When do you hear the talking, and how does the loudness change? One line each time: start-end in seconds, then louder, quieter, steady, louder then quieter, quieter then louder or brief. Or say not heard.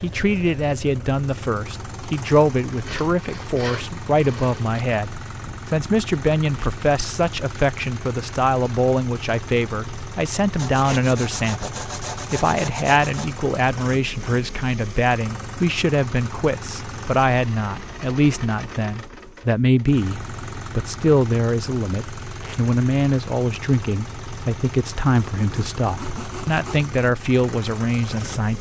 0.0-28.5 steady.